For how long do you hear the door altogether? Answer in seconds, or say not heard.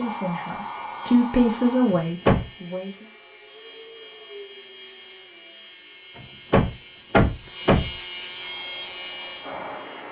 2 s.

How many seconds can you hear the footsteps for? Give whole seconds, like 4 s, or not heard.
not heard.